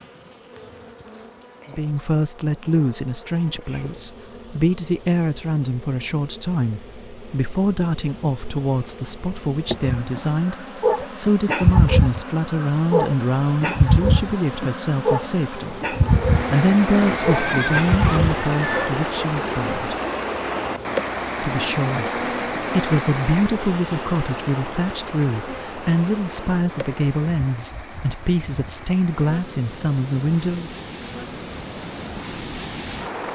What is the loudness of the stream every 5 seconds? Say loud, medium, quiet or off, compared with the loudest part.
off, off, off, loud, loud, medium, medium.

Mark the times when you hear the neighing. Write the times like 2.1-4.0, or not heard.
16.9-18.9.